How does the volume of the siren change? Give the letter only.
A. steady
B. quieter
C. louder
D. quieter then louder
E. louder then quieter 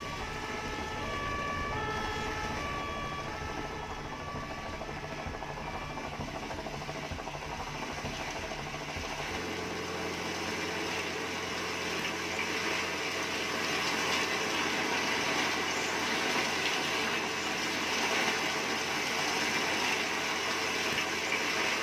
B.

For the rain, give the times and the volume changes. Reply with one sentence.
You can hear the rain from 0.0 to 21.7 s, getting louder.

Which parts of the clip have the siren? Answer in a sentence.
You can hear the siren from 0.0 to 6.1 s.